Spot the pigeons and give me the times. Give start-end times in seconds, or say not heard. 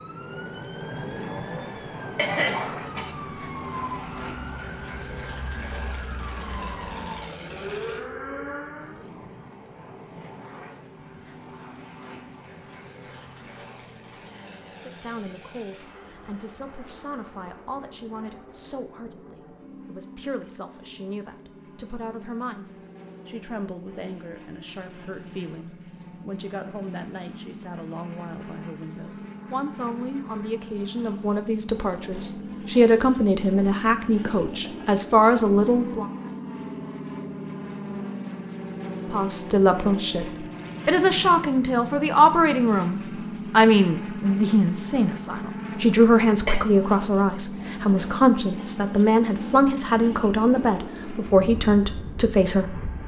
not heard.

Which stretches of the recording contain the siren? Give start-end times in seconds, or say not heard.
0.0-9.1.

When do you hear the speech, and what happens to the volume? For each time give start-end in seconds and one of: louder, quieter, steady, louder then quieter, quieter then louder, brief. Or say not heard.
14.7-36.0 louder
39.1-53.0 steady.